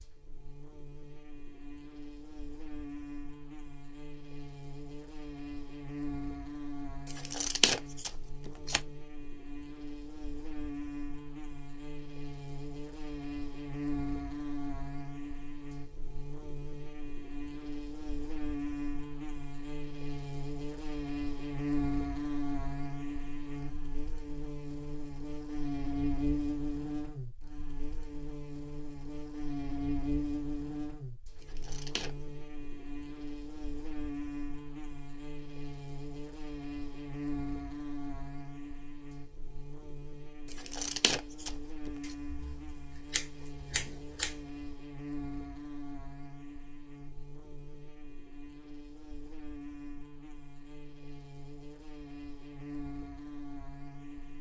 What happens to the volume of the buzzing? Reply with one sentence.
The loudness of the buzzing goes up, then down.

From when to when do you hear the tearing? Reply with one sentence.
The tearing can be heard from 7.0 to 8.8 s, from 31.4 to 32.1 s and from 40.5 to 41.9 s.